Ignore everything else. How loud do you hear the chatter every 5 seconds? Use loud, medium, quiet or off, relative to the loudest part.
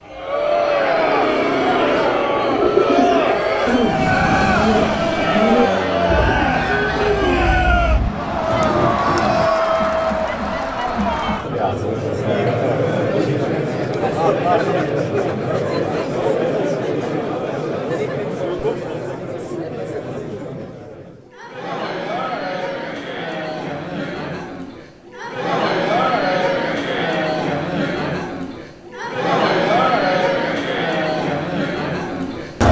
loud, loud, loud, loud, medium, loud, loud.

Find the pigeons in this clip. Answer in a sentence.
The pigeons can be heard from 2.4 to 9.5 s.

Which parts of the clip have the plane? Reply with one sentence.
You can hear the plane from 0.0 to 8.7 s.